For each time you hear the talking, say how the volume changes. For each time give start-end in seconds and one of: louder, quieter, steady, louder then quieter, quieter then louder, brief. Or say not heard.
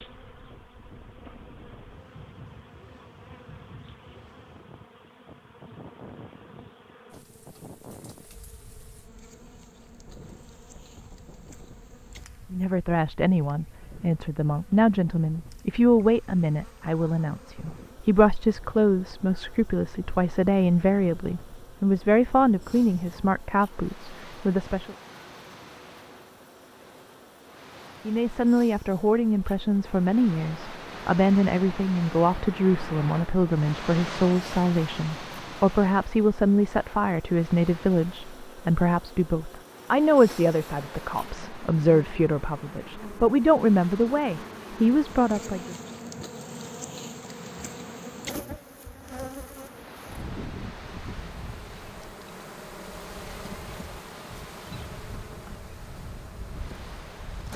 12.5-24.9 steady
28.1-45.8 steady.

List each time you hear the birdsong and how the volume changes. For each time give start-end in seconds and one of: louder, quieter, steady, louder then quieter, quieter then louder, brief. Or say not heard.
not heard.